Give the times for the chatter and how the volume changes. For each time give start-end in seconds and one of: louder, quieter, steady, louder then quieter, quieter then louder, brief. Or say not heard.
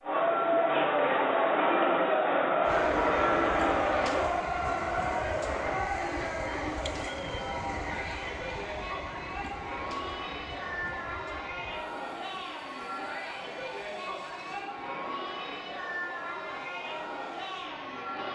0.0-18.3 quieter.